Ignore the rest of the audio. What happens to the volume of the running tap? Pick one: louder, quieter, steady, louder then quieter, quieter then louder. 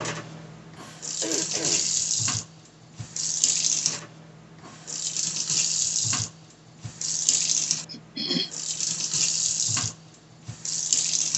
steady.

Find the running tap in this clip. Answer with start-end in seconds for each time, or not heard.
0.0-11.3.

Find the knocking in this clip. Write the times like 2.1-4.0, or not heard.
not heard.